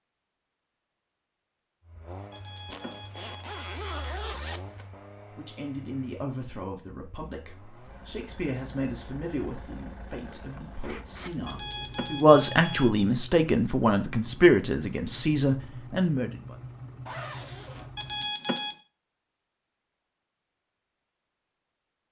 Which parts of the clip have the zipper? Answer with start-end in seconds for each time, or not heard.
2.7-4.8, 10.7-11.6, 17.1-18.1.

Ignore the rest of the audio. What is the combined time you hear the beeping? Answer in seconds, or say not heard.
4 s.